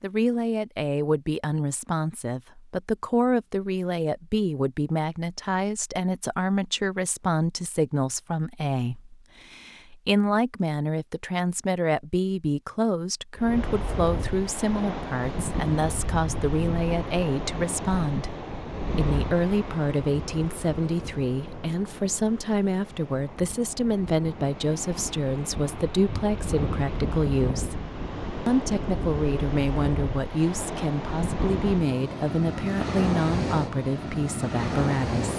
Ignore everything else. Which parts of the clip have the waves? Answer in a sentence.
The waves can be heard from 13.3 to 35.3 s.